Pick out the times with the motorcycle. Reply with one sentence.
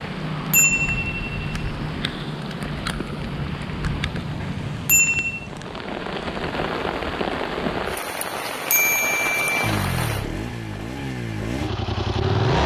The motorcycle can be heard from 9.6 to 12.6 s.